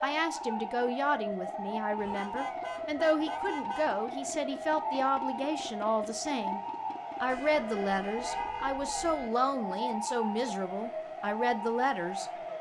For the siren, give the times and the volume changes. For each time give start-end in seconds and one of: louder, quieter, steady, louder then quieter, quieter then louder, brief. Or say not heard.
0.0-12.5 steady.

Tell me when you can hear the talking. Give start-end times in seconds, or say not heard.
0.0-6.6, 7.2-12.2.